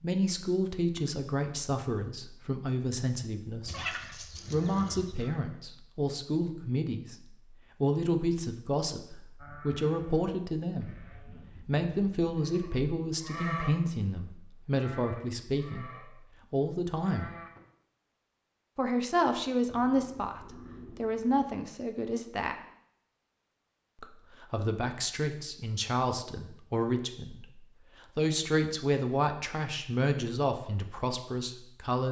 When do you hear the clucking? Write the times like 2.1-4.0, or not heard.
3.6-5.3.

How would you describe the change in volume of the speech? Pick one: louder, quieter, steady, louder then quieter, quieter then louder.
steady.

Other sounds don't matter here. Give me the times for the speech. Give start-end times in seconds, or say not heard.
0.0-17.3, 18.8-22.6, 24.0-32.0.